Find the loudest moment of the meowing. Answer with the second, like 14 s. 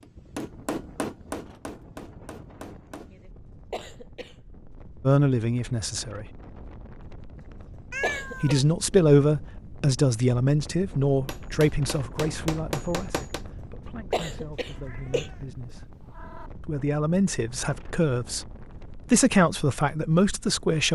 8 s.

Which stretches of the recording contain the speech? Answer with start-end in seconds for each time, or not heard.
5.0-6.2, 8.4-15.8, 16.6-20.8.